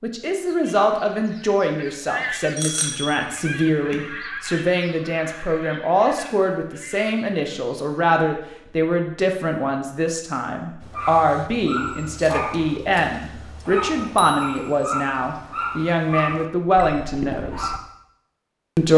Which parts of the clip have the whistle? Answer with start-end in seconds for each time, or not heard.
not heard.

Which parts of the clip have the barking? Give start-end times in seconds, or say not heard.
10.8-17.8.